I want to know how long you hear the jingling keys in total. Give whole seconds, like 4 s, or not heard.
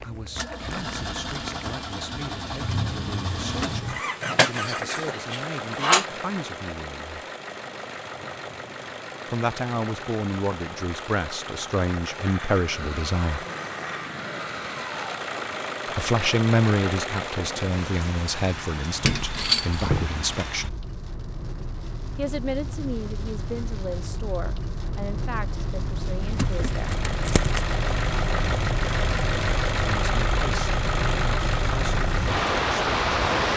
4 s.